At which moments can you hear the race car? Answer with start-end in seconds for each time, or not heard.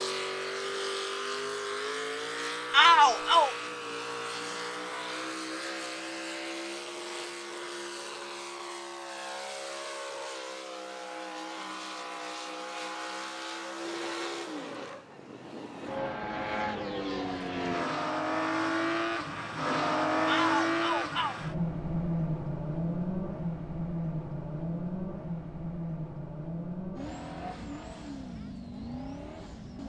0.0-29.8.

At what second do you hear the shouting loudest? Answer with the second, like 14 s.
3 s.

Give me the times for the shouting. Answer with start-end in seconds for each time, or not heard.
2.7-3.5, 20.2-21.4.